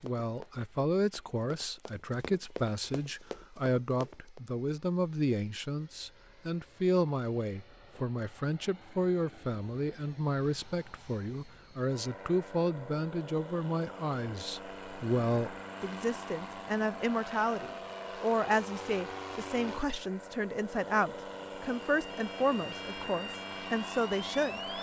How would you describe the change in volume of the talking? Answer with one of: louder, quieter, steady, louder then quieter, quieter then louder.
steady.